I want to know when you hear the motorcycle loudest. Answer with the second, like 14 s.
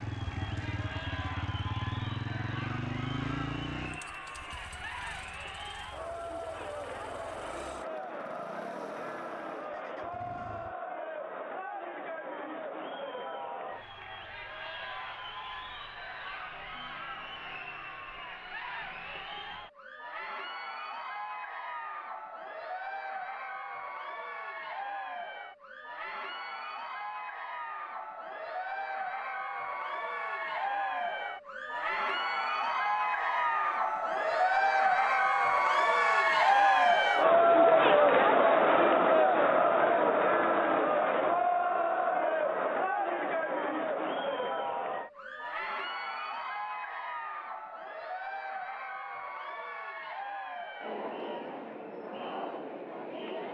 3 s.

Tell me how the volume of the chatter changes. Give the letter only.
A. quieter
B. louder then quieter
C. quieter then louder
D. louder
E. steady
B.